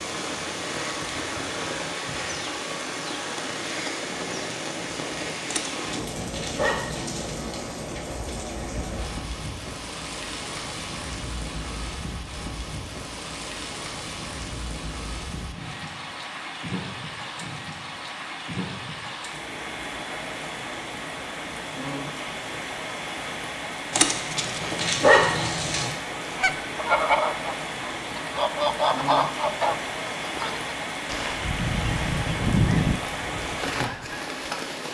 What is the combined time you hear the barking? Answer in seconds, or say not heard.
4 s.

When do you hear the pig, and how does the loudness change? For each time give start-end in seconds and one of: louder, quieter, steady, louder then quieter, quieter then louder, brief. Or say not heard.
not heard.